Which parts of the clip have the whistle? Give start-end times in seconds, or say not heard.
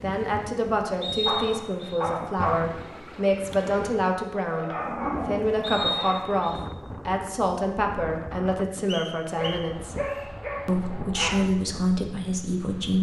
1.0-1.9, 5.6-6.6, 8.8-10.2.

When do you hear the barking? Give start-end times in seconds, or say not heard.
1.2-2.8, 4.5-6.5, 9.3-11.5.